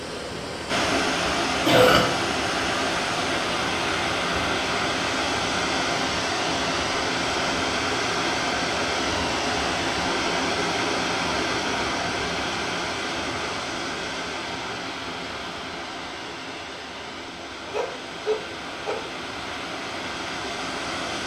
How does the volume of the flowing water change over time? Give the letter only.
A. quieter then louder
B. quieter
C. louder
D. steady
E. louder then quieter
B.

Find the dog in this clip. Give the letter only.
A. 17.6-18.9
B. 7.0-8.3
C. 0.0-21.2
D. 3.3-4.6
A.